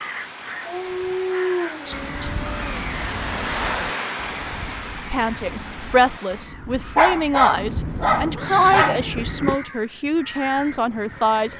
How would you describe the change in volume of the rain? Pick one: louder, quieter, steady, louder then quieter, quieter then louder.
louder then quieter.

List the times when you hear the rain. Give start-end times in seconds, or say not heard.
0.0-6.5.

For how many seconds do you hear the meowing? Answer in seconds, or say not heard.
3 s.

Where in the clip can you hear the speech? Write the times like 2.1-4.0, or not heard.
5.1-11.5.